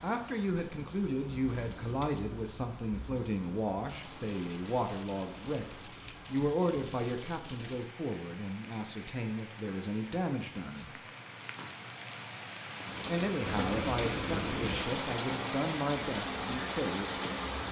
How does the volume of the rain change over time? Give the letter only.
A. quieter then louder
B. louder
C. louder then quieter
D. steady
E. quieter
B.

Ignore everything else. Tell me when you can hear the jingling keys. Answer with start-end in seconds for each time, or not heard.
1.4-2.5, 13.4-14.8.